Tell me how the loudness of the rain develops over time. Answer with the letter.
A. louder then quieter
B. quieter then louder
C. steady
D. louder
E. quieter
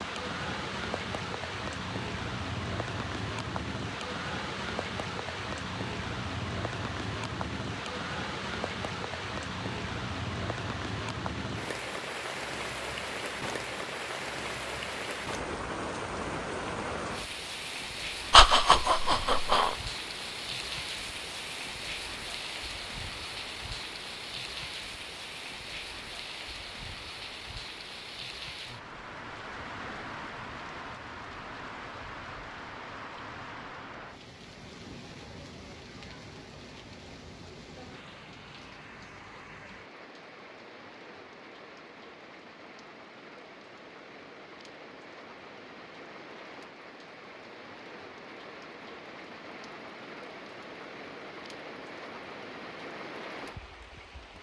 E.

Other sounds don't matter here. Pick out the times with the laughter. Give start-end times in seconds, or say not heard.
18.3-19.8.